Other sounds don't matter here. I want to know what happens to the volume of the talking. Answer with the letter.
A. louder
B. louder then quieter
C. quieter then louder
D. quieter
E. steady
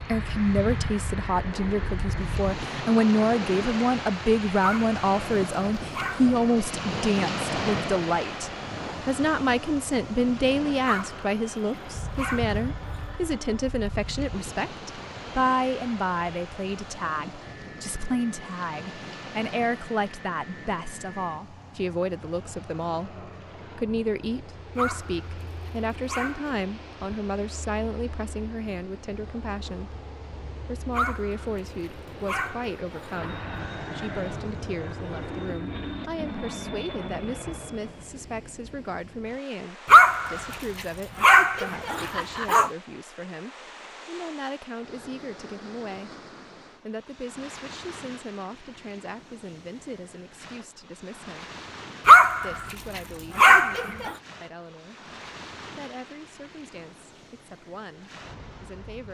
D.